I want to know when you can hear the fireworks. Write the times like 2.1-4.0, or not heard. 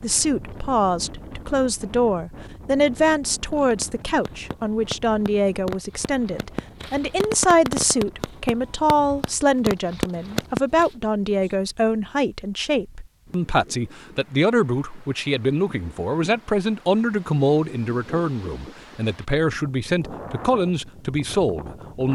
3.5-10.9.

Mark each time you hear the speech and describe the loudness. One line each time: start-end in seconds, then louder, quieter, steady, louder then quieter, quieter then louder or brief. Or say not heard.
0.0-22.1 steady.